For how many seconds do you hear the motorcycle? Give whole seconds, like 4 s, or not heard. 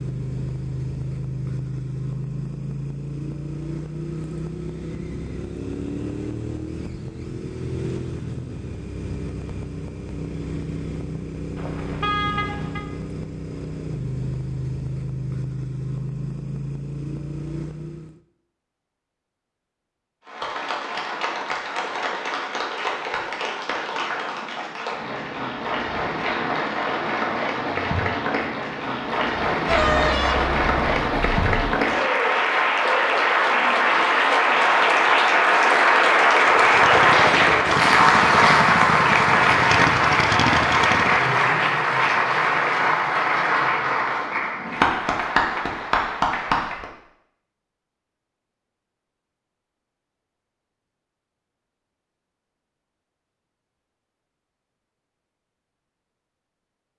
23 s.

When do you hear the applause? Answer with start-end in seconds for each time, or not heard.
20.2-46.9.